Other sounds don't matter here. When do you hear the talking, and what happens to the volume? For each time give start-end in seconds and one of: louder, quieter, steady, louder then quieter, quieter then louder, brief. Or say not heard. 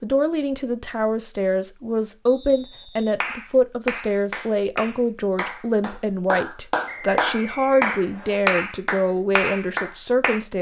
0.0-10.5 steady.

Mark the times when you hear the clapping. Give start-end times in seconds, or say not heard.
3.2-10.4.